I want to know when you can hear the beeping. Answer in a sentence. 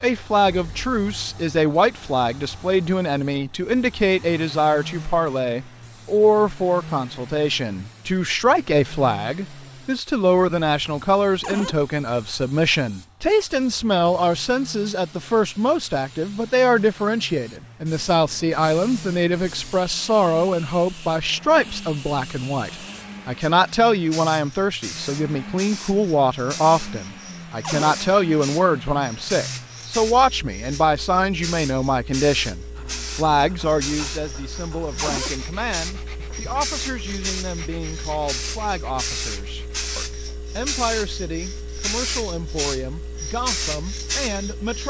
You can't hear the beeping here.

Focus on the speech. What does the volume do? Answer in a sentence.
The loudness of the speech goes down.